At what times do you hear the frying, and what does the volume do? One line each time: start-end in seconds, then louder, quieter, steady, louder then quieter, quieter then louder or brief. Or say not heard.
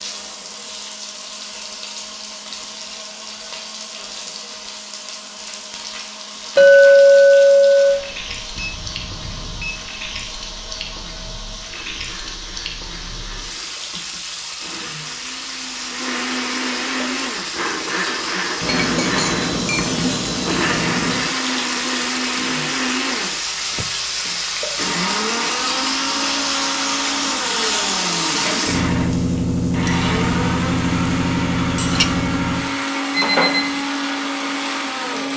0.0-35.3 louder.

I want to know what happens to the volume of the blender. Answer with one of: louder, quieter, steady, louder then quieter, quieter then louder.
louder.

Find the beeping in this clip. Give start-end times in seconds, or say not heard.
8.6-9.8, 18.6-21.4, 33.1-33.8.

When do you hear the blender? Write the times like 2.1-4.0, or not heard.
0.0-35.3.